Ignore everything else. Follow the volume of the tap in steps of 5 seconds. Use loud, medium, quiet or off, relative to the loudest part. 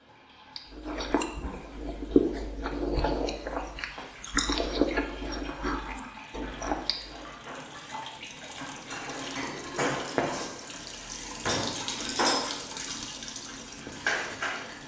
quiet, medium, loud.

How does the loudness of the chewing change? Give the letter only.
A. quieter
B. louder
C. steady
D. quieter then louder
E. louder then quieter
E.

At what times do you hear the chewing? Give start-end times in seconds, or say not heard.
0.6-7.3.